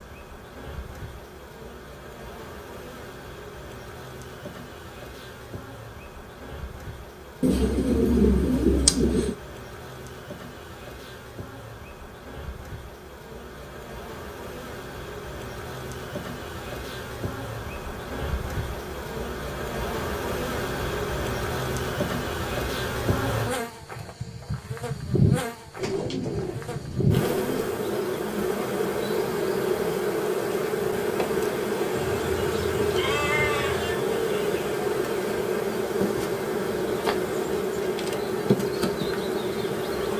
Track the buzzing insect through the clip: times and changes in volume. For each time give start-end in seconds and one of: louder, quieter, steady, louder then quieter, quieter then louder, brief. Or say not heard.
0.0-40.1 louder.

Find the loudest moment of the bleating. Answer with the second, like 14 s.
33 s.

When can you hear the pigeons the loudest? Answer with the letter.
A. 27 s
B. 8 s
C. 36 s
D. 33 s
B.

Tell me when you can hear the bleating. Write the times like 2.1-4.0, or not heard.
31.9-34.0.